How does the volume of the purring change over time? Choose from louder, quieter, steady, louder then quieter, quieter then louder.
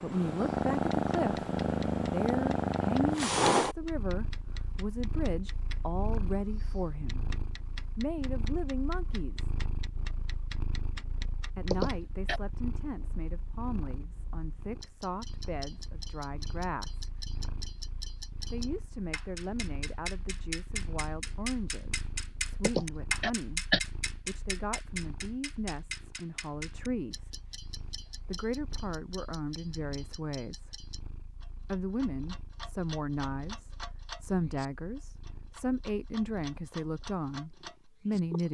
quieter.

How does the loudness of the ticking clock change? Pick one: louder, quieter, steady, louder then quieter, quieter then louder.
louder then quieter.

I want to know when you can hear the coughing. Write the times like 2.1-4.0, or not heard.
11.7-12.4, 22.6-23.8.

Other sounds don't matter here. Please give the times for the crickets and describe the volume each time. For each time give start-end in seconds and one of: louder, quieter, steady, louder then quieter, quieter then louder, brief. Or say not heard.
not heard.